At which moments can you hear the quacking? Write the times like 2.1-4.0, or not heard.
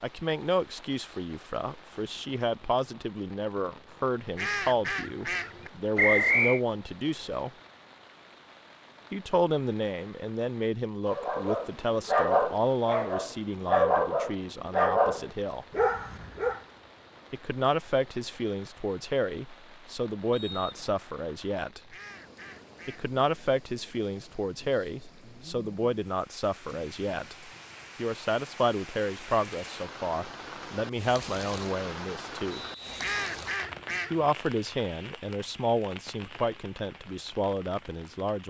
4.3-5.7, 21.9-23.1, 33.0-34.3.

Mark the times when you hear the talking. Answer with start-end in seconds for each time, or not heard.
0.0-7.5, 9.1-15.7, 17.3-21.8, 22.9-32.6, 34.1-38.4.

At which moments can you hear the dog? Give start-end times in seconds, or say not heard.
11.1-16.6.